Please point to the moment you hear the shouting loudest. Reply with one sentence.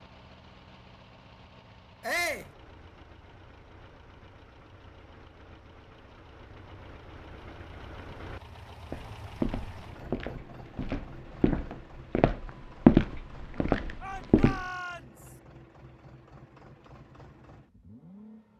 The volume of the shouting peaks at 2 seconds.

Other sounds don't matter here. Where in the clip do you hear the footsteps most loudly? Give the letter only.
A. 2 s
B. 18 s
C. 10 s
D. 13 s
D.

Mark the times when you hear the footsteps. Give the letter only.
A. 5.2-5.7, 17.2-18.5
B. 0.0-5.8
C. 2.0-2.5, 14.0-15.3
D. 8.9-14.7
D.